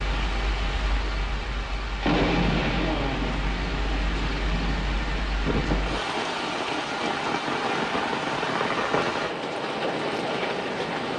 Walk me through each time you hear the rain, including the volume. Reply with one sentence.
The rain can be heard from 0.0 to 11.1 s, at a steady volume.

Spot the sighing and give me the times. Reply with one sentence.
You can hear the sighing from 2.7 to 3.4 s.